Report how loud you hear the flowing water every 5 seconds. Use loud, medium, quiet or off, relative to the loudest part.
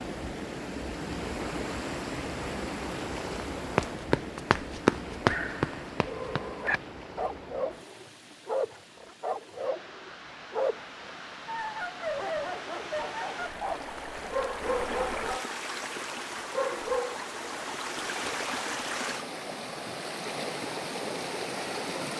loud, medium, medium, loud, loud.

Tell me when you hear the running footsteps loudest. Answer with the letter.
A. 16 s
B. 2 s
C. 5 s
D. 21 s
C.